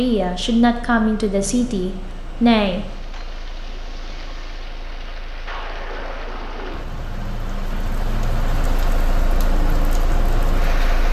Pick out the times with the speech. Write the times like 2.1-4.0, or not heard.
0.0-2.9.